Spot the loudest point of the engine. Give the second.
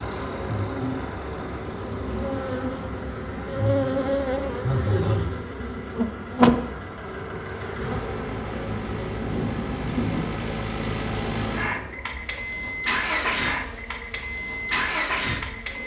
13 s.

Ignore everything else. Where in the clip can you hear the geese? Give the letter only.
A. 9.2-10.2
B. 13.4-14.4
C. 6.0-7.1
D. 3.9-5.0
A.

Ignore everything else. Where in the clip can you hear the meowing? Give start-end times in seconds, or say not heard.
not heard.